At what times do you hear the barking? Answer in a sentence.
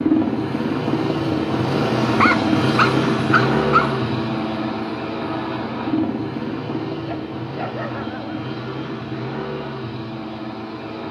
You can hear the barking from 2.1 to 3.9 s and from 7.0 to 8.4 s.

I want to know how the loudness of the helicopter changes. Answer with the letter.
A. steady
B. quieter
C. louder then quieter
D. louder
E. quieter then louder
B.